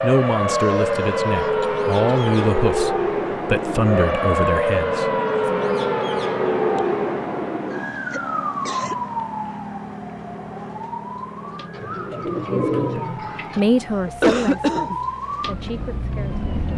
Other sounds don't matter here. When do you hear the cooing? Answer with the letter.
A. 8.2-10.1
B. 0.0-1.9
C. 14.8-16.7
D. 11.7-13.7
D.